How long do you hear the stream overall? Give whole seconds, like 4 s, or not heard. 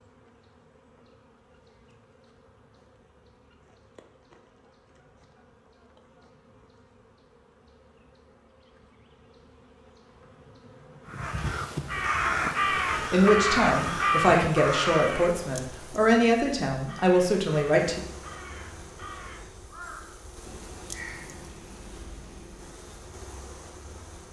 not heard.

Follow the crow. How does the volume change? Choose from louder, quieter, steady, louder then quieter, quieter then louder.
quieter.